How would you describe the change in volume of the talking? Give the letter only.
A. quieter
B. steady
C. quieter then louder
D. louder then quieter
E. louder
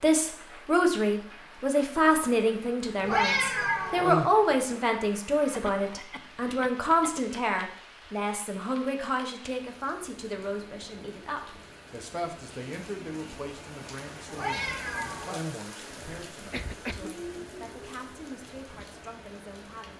A.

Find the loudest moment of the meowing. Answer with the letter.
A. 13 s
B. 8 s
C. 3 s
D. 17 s
C.